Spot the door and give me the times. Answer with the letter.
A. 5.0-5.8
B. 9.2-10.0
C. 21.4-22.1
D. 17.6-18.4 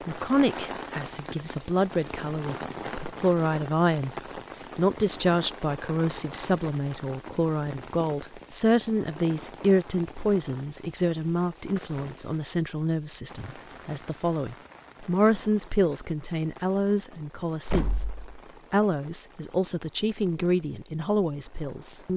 D.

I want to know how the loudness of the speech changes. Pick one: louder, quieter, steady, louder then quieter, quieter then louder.
steady.